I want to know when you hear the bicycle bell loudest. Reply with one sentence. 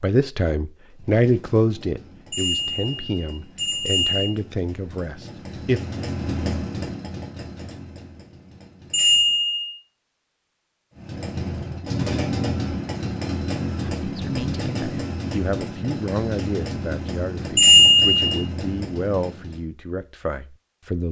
The loudest moment of the bicycle bell is at 18 seconds.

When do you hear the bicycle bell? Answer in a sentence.
The bicycle bell can be heard from 2.3 to 4.3 s, from 8.9 to 9.8 s and from 17.6 to 18.2 s.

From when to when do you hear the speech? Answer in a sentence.
The speech can be heard from 0.0 to 5.8 s and from 13.8 to 21.0 s.